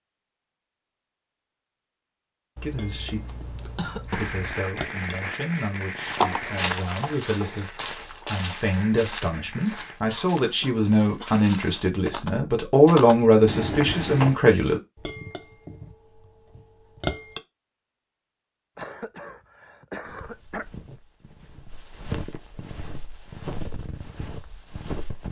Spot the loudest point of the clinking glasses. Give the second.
17 s.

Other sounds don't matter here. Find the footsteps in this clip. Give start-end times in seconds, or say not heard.
6.0-14.4, 20.0-25.2.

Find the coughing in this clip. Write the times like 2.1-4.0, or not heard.
2.5-4.5, 10.1-11.4, 18.8-20.6.